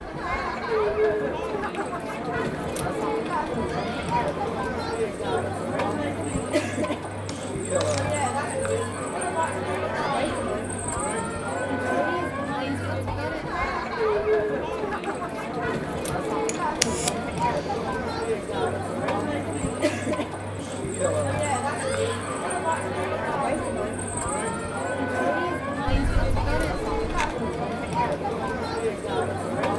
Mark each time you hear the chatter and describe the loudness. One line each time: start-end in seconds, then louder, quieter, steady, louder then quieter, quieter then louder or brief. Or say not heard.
0.0-29.7 steady.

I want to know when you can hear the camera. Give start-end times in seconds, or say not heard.
7.2-8.1, 16.4-17.1, 25.9-27.4.